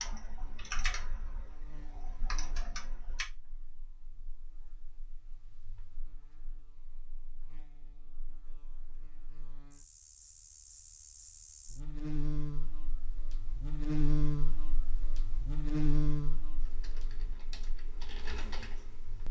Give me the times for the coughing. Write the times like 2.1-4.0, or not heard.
not heard.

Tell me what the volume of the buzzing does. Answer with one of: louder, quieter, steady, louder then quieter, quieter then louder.
quieter then louder.